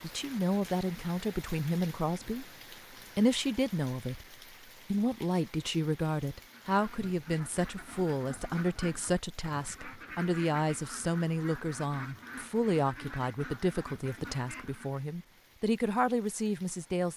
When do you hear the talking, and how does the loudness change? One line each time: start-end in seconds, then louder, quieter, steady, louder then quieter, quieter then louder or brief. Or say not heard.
0.0-2.5 brief
3.1-17.1 steady.